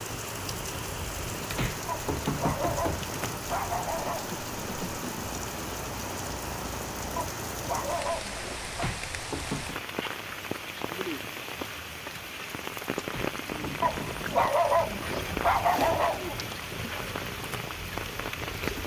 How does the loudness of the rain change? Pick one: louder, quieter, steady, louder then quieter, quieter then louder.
steady.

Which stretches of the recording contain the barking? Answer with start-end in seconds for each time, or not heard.
1.9-4.3, 7.2-8.9, 13.8-16.8.